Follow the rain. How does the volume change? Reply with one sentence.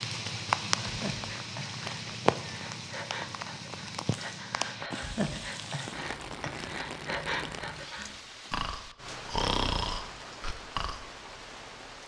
The loudness of the rain goes down.